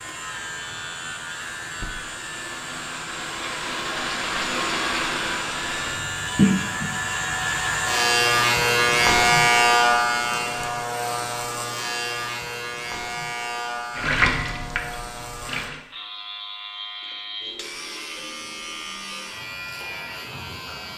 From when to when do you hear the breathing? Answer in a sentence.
You can't hear the breathing here.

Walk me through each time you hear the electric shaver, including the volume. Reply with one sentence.
You can hear the electric shaver from 0.0 to 20.9 s, getting louder then quieter.